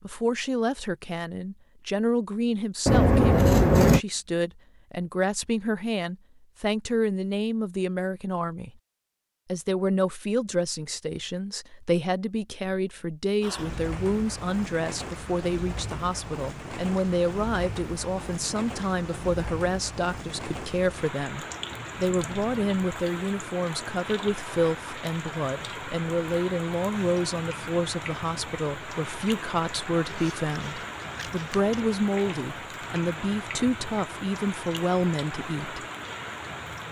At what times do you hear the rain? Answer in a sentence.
The rain can be heard from 13.4 to 36.8 s.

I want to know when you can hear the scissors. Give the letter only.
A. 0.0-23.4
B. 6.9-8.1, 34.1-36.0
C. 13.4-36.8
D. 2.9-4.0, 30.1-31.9
D.